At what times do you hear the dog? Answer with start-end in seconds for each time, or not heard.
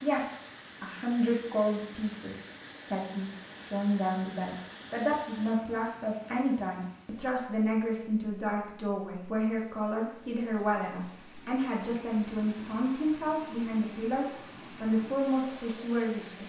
not heard.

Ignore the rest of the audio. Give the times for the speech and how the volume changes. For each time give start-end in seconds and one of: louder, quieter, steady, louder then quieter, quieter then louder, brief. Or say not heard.
0.0-16.4 steady.